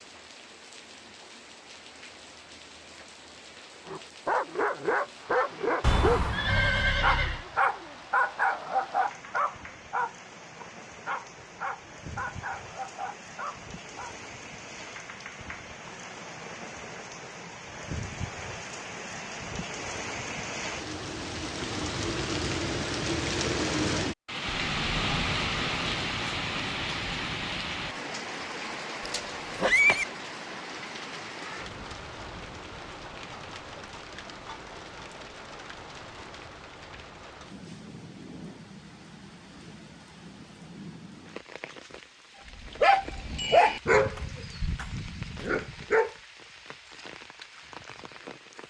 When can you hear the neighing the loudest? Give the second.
30 s.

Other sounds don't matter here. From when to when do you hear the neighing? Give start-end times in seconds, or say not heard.
5.8-7.5, 29.1-30.1.